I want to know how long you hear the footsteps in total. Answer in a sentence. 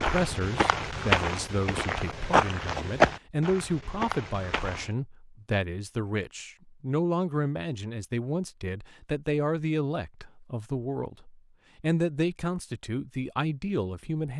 The footsteps can be heard for 5 seconds in total.